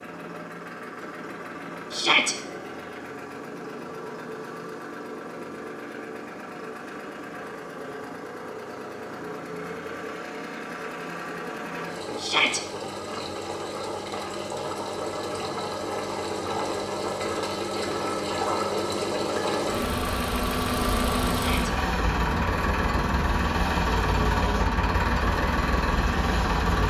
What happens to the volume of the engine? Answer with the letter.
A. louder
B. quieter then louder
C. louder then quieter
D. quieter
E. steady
A.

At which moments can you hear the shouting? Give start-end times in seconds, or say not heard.
1.9-2.4, 12.2-12.6, 21.3-21.8.